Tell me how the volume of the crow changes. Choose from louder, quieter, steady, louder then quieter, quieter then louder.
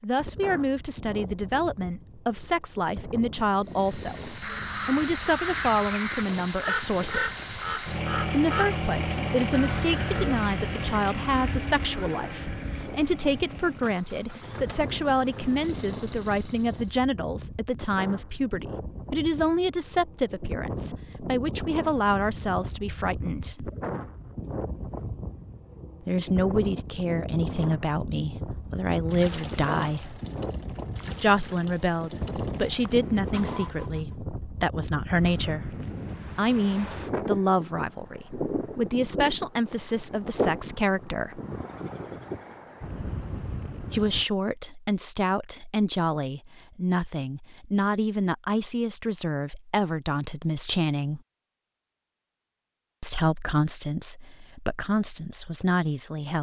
quieter.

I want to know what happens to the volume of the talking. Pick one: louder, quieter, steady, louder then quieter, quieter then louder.
steady.